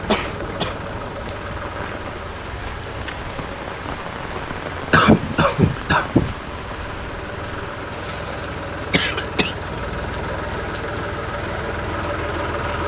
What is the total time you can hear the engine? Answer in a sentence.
You can hear the engine for 13 seconds altogether.